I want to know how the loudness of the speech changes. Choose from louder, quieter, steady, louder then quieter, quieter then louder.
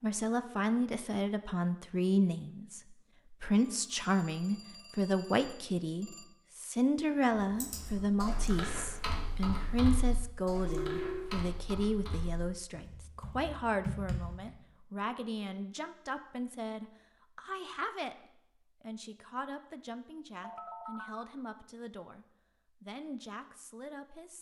quieter.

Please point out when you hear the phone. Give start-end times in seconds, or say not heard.
3.6-6.2, 10.6-11.3, 20.4-21.1.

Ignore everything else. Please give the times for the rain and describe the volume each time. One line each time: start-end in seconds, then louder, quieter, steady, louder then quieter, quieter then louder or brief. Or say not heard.
not heard.